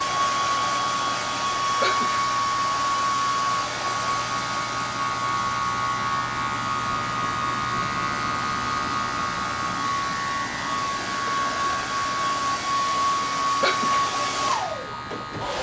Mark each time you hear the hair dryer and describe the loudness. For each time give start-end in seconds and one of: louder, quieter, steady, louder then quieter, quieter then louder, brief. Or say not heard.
0.0-15.5 quieter then louder.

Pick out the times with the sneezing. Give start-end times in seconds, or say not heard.
1.8-2.2, 13.6-14.1.